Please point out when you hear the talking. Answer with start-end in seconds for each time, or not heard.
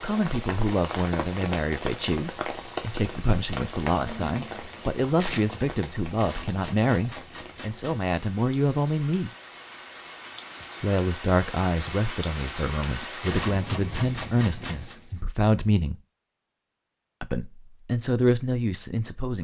0.0-9.3, 10.8-15.9, 17.2-19.4.